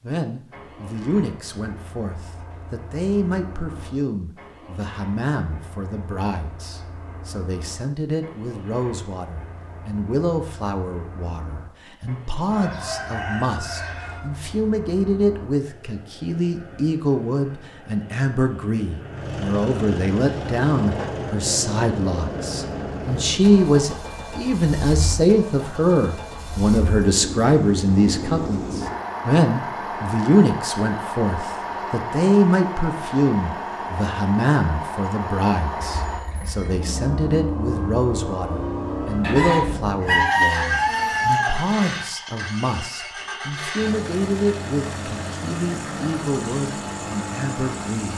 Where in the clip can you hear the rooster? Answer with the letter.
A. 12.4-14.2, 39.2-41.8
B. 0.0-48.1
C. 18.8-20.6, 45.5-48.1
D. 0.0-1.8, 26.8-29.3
A.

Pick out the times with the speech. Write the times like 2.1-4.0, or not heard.
0.0-48.1.